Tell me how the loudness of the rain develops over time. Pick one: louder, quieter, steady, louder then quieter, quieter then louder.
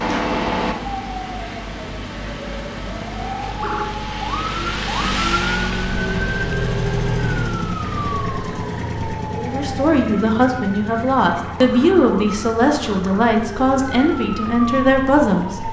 louder then quieter.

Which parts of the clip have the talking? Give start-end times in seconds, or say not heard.
9.3-15.6.